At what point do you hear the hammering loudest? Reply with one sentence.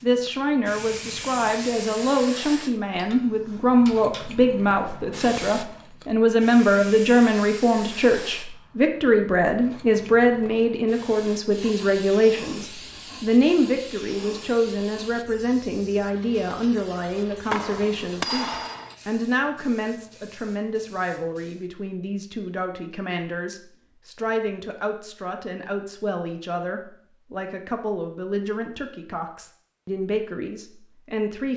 The loudest moment of the hammering is at 18 seconds.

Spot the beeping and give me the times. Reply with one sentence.
You can't hear the beeping here.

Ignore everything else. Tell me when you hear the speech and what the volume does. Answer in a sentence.
You can hear the speech from 0.0 to 31.5 s, getting quieter.